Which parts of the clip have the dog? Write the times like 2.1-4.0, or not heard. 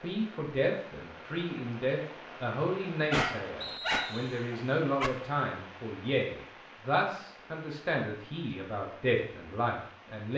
3.1-5.1.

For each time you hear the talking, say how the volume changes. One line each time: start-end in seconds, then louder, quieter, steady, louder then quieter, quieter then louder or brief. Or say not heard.
0.0-10.3 steady.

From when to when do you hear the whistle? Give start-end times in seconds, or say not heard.
3.6-4.5.